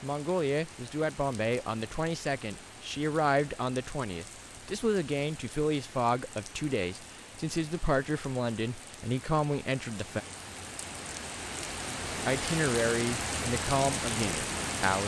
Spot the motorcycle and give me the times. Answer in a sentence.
The motorcycle can't be heard in this clip.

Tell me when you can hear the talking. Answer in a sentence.
The talking can be heard from 0.0 to 10.2 s and from 12.2 to 15.0 s.